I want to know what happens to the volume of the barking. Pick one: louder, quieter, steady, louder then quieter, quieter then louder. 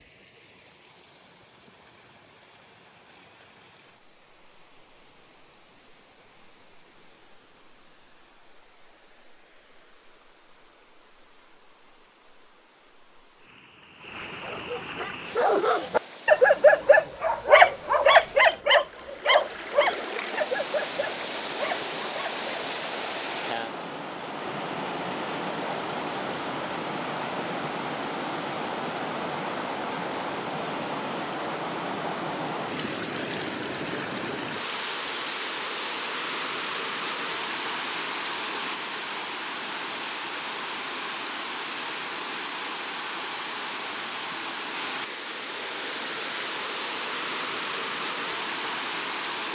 louder then quieter.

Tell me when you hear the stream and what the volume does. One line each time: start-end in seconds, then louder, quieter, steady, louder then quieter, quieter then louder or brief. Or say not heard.
0.0-49.5 louder.